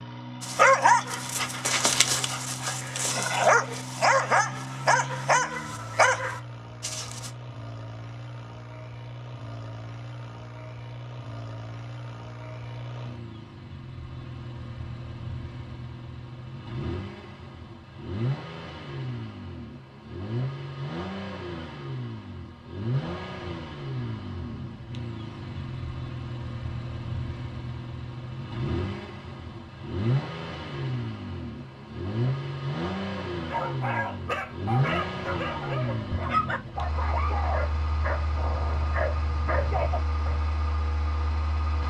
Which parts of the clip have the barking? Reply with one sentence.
You can hear the barking from 0.4 to 7.3 s and from 33.5 to 40.4 s.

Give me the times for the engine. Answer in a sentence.
The engine can be heard from 0.0 to 41.8 s.